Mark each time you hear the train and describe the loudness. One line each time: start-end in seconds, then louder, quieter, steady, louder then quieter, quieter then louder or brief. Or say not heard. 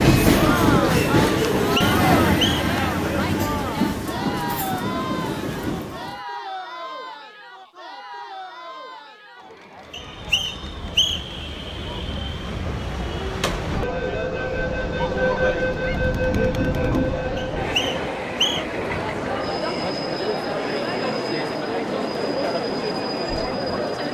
0.0-6.2 quieter
9.8-24.0 louder then quieter.